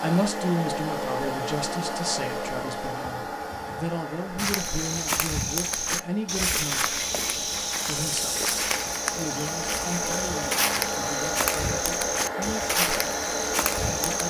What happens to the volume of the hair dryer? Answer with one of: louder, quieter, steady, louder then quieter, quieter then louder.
quieter then louder.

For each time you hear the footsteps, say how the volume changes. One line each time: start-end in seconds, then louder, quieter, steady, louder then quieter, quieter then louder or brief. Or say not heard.
4.3-14.2 steady.